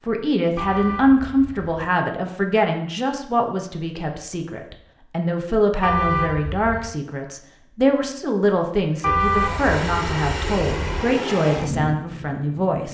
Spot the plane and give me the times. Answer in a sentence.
The plane can be heard from 9.2 to 12.8 s.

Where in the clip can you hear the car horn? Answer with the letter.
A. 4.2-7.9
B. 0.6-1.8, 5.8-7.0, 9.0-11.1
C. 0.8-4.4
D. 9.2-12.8
B.